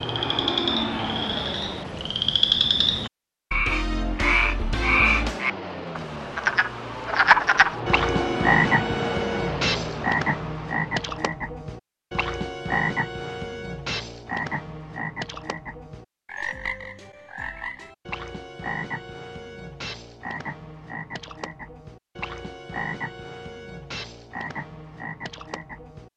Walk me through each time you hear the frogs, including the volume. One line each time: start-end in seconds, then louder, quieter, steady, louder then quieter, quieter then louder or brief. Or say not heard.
0.0-26.1 quieter.